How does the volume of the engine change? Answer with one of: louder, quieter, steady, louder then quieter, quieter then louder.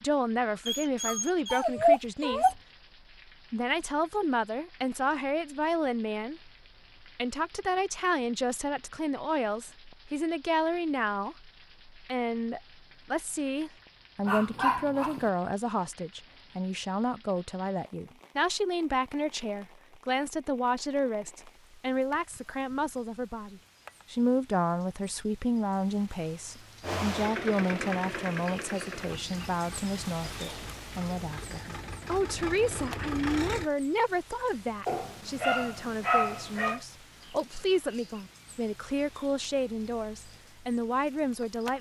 quieter then louder.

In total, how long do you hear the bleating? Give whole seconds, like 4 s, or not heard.
not heard.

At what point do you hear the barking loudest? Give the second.
2 s.